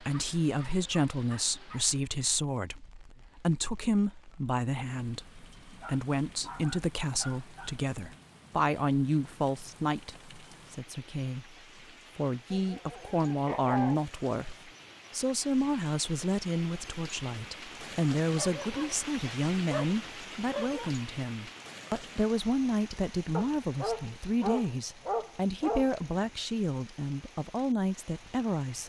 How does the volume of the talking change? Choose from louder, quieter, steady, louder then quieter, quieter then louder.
steady.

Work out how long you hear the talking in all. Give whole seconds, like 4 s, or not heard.
28 s.